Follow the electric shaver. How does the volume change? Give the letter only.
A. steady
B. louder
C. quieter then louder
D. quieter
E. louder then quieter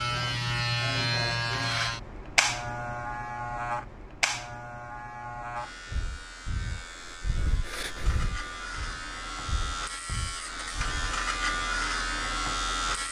C.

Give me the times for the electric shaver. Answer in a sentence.
You can hear the electric shaver from 0.0 to 13.0 s.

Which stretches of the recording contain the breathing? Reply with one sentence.
The breathing can be heard from 5.7 to 11.2 s.